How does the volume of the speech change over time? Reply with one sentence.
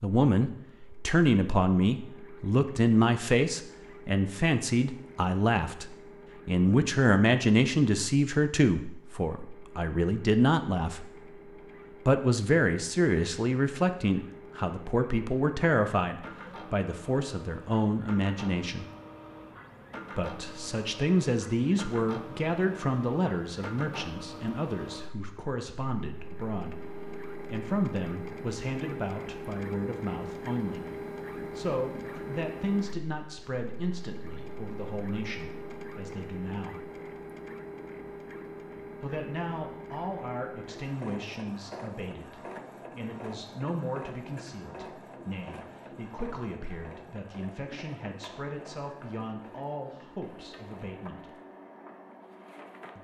The loudness of the speech goes down.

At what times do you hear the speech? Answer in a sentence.
You can hear the speech from 0.0 to 11.3 s, from 12.1 to 18.9 s, from 20.1 to 36.9 s and from 39.0 to 51.3 s.